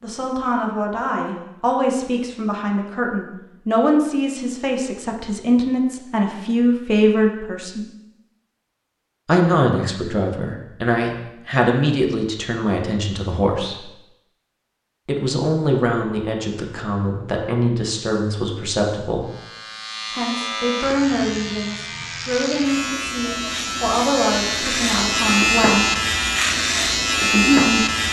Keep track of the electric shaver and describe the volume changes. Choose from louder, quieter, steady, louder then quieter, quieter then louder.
louder.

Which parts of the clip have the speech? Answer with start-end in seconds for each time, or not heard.
0.0-7.8, 9.2-13.8, 15.1-19.3, 20.1-25.9, 27.2-27.9.